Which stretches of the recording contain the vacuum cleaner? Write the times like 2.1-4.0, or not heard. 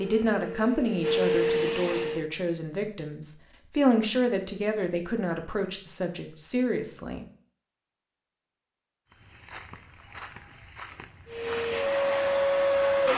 0.0-2.2, 11.2-13.1.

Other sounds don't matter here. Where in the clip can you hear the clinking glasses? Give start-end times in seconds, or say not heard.
not heard.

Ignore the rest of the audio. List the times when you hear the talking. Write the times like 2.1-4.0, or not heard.
0.0-7.2.